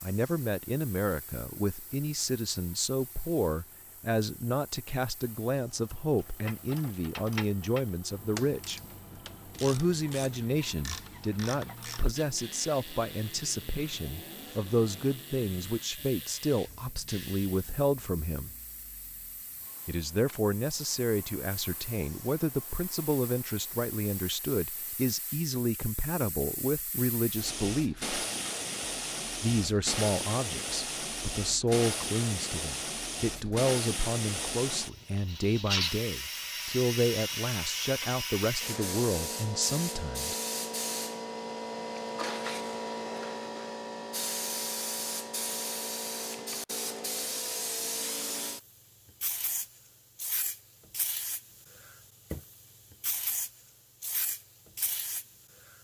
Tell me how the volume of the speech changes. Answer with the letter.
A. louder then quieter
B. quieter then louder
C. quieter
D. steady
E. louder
D.